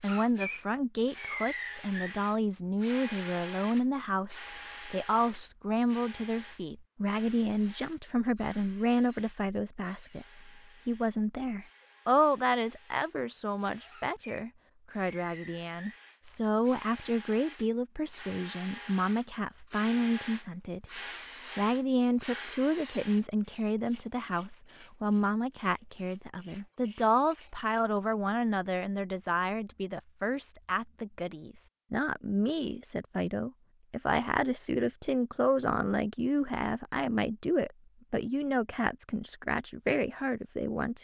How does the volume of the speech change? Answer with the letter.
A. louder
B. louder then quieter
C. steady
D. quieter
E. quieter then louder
C.